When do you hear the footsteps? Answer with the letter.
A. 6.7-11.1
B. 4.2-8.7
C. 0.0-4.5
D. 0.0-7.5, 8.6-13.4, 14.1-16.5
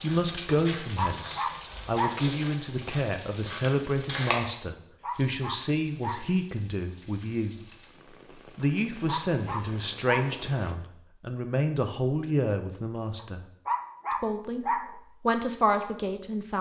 C.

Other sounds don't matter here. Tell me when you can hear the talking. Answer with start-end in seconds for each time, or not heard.
0.0-7.5, 8.6-13.4, 14.1-16.5.